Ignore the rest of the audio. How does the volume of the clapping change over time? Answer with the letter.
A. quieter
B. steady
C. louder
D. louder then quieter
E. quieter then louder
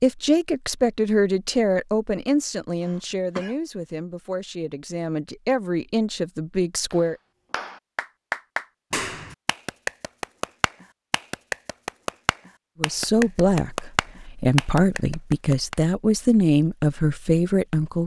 B.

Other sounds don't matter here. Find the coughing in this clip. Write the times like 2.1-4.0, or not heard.
2.8-3.5.